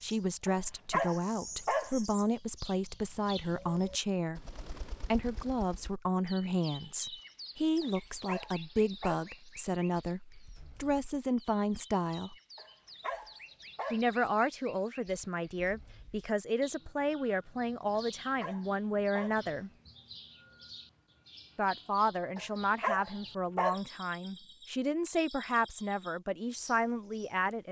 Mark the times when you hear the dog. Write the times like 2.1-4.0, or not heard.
0.5-1.9, 7.8-9.3, 12.6-14.1, 17.9-19.4, 22.4-23.8.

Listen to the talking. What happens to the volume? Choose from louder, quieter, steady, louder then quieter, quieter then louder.
steady.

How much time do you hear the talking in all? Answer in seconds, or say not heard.
24 s.